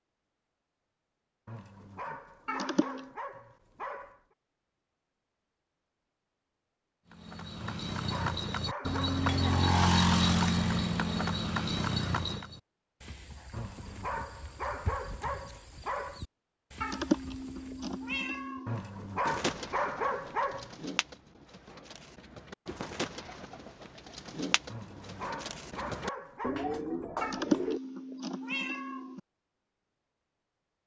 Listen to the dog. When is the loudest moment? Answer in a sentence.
The loudest moment of the dog is at 20 seconds.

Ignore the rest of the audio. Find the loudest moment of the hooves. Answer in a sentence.
The volume of the hooves peaks at 10 seconds.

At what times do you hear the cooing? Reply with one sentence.
The cooing can be heard from 19.2 to 27.8 s.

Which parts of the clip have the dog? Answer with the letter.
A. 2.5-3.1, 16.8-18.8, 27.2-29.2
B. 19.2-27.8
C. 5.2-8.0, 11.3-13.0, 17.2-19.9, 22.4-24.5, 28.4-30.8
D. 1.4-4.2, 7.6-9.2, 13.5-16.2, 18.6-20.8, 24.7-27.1
D.